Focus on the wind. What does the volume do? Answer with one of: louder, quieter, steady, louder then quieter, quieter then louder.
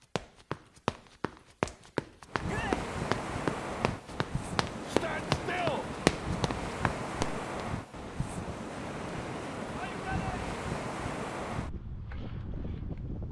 steady.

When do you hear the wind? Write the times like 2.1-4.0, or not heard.
2.2-13.2.